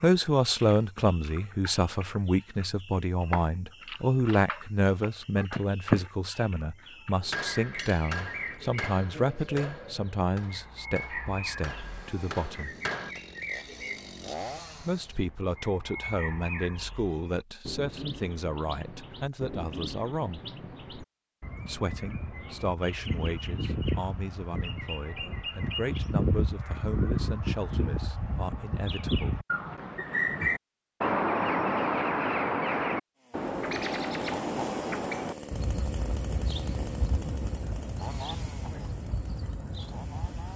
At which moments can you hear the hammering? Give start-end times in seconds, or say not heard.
7.2-13.2.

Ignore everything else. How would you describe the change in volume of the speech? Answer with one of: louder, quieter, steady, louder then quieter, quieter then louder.
quieter.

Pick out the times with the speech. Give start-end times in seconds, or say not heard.
0.0-12.8, 14.8-20.4, 21.6-29.4.